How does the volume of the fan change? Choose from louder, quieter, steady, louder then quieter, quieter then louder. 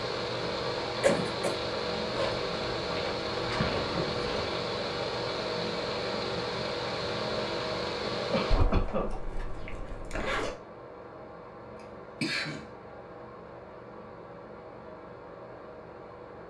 quieter.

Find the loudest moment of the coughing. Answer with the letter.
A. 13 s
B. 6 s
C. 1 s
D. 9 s
C.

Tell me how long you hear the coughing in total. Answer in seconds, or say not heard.
2 s.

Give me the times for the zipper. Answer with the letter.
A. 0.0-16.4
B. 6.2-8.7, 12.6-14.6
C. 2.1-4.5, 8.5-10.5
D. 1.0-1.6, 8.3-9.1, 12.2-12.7
C.